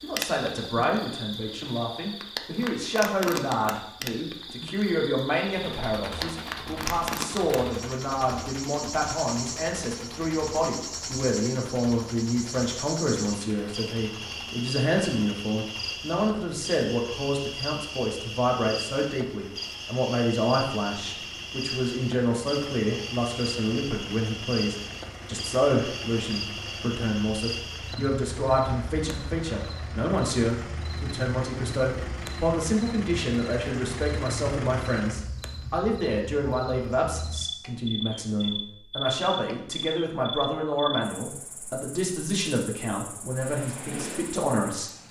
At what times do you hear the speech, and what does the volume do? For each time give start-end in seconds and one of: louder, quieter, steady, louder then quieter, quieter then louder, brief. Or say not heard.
0.0-44.9 steady.